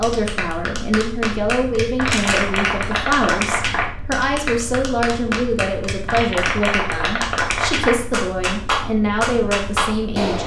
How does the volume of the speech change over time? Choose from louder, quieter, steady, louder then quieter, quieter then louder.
steady.